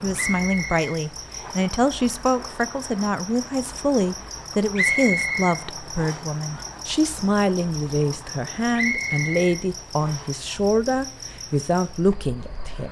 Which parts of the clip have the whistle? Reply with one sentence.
You can hear the whistle from 0.1 to 1.6 s, from 4.8 to 6.2 s and from 8.8 to 10.3 s.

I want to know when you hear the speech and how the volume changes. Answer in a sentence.
The speech can be heard from 0.0 to 12.8 s, at a steady volume.